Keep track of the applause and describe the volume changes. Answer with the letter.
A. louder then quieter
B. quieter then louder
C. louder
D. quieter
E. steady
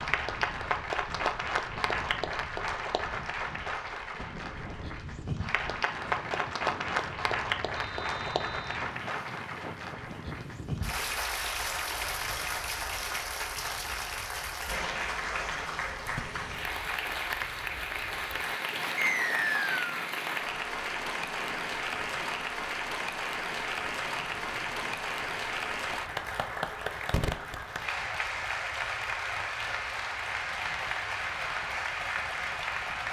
E.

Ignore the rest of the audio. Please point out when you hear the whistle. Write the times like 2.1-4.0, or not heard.
7.8-8.8, 18.9-19.9.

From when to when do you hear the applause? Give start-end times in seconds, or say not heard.
0.0-33.0.